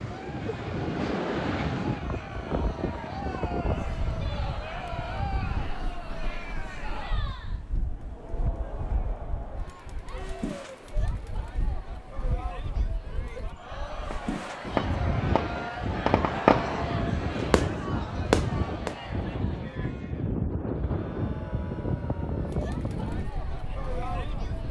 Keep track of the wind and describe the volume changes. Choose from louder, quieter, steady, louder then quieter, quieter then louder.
quieter then louder.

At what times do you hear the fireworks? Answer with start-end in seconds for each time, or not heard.
14.1-18.9.